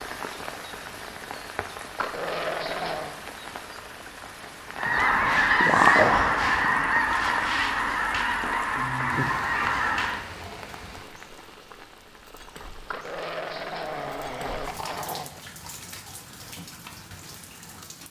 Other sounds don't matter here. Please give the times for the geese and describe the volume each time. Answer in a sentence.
The geese can be heard from 4.8 to 10.2 s, getting quieter.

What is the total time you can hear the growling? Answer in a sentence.
You can hear the growling for 4 seconds altogether.